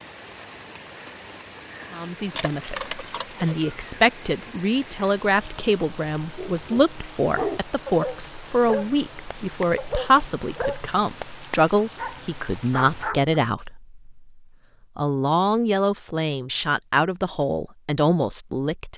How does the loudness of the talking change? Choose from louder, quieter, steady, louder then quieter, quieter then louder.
steady.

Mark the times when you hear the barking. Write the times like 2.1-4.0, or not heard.
6.2-13.3.